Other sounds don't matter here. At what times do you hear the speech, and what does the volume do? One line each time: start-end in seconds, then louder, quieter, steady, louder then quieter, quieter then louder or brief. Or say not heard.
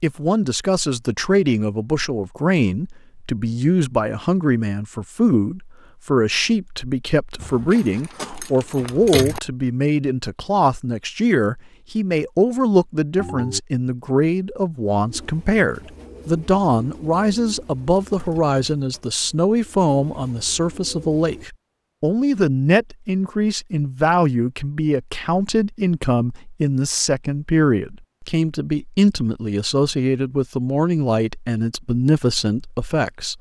0.0-33.3 steady.